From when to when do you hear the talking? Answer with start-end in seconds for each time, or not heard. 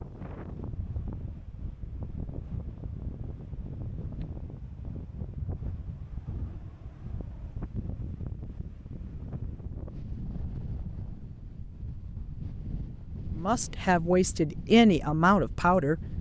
13.3-16.0.